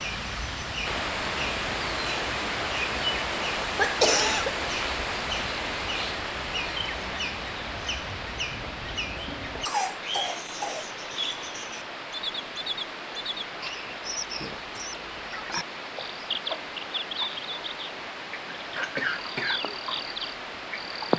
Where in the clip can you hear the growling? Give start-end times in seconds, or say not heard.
not heard.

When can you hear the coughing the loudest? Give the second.
4 s.